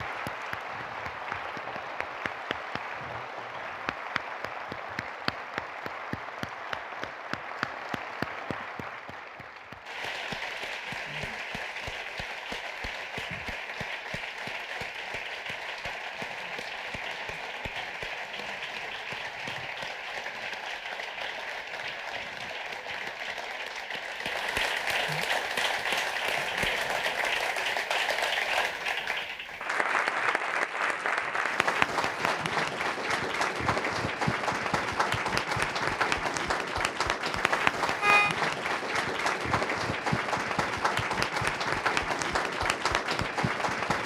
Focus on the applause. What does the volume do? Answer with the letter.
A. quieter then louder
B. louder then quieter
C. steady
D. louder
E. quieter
D.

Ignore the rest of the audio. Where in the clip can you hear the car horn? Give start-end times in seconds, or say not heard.
37.5-38.4.